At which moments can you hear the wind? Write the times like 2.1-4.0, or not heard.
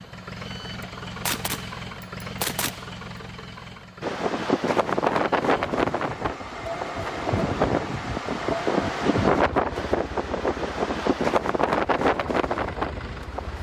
4.0-13.5.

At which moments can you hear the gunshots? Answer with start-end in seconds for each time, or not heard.
0.5-3.0.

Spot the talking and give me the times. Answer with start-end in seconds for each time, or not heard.
not heard.